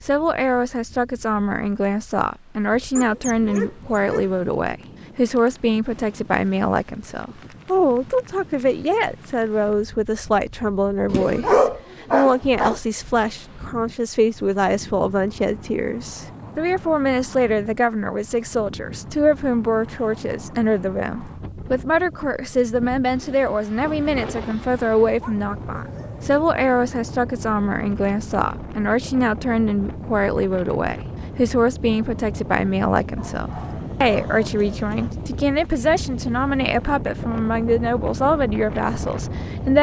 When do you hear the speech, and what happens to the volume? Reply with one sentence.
The speech can be heard from 0.0 to 39.7 s, at a steady volume.